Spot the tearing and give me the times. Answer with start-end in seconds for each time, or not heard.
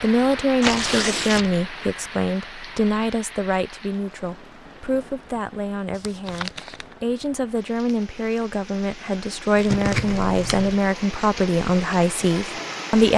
0.6-1.5, 5.9-6.8, 9.6-10.2.